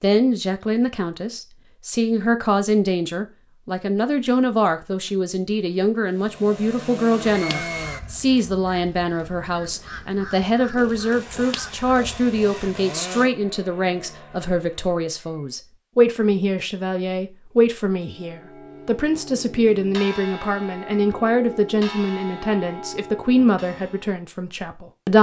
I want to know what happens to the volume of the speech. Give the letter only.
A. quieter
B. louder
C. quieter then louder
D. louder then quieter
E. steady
E.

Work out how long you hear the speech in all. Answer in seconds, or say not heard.
25 s.